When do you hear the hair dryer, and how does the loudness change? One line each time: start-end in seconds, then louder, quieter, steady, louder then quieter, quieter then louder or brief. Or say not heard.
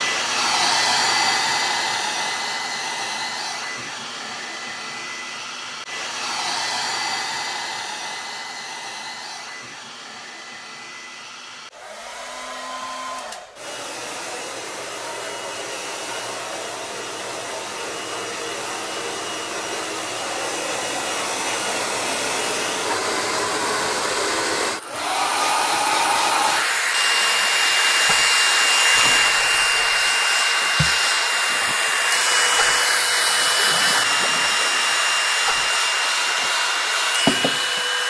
0.0-38.0 quieter then louder.